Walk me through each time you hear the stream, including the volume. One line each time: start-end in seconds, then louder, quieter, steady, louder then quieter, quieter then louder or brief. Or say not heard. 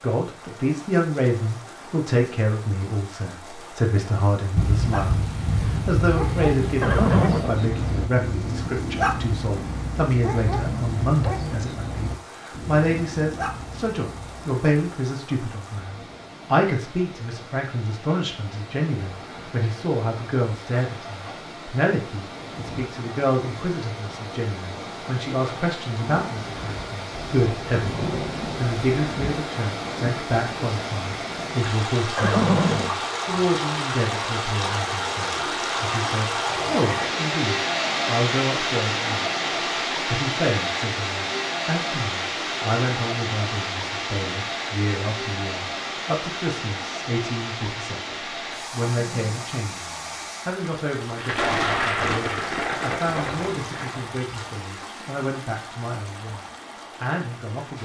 0.0-57.8 louder then quieter.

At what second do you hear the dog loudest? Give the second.
9 s.